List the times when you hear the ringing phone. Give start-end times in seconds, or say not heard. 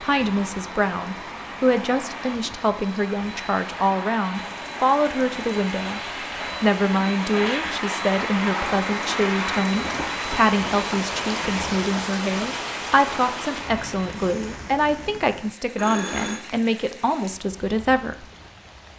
15.8-16.4.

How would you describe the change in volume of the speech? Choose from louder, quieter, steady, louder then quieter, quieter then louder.
steady.